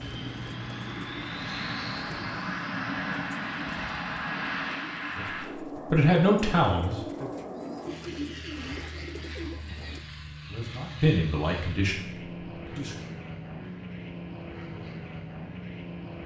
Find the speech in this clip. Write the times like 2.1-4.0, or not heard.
5.2-7.3, 9.4-12.9.